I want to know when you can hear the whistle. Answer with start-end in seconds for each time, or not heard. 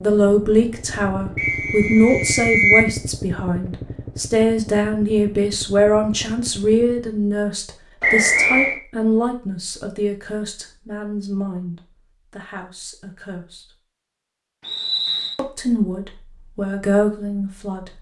1.4-2.9, 8.0-8.8, 14.6-15.4.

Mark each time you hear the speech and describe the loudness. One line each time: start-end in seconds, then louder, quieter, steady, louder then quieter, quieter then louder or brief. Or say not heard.
0.0-13.7 quieter
15.3-17.9 brief.